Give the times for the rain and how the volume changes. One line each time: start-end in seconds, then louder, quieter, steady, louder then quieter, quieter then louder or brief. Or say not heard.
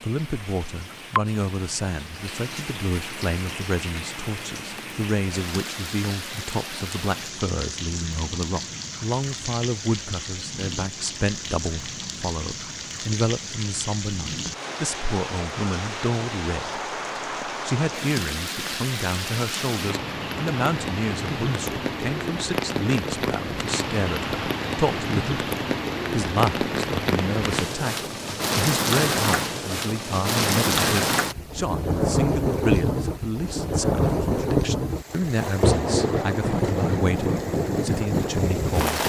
0.0-39.0 louder.